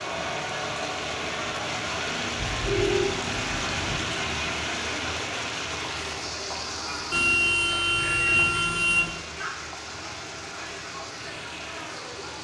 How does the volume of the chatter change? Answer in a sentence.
The loudness of the chatter goes down.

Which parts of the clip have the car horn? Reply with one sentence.
You can hear the car horn from 2.4 to 4.0 s and from 7.1 to 9.2 s.